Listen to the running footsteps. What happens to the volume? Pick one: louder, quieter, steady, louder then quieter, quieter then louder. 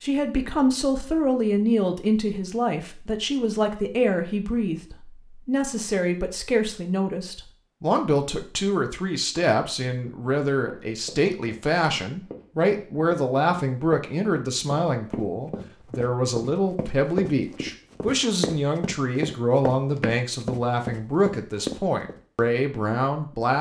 louder.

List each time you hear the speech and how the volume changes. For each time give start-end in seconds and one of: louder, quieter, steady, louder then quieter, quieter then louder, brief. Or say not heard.
0.0-23.5 steady.